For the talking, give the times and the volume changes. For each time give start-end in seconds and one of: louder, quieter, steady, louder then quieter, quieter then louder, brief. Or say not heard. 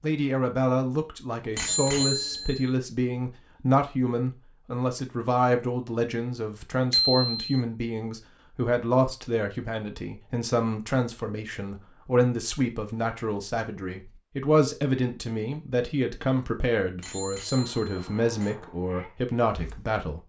0.0-20.2 steady.